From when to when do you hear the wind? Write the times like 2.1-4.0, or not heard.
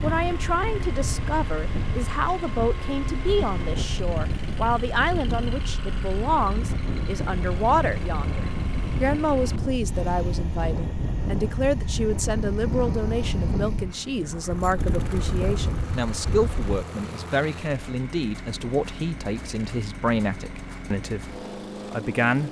0.0-16.9.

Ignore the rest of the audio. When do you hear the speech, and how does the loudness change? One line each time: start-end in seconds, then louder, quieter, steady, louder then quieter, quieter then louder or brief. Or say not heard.
0.0-22.4 steady.